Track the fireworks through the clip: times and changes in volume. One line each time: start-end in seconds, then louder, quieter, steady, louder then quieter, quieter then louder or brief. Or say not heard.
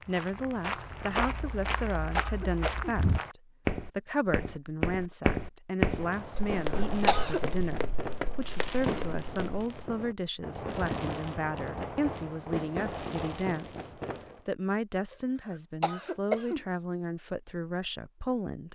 5.9-14.4 steady.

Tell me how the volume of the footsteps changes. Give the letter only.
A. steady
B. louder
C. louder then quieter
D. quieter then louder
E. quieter
C.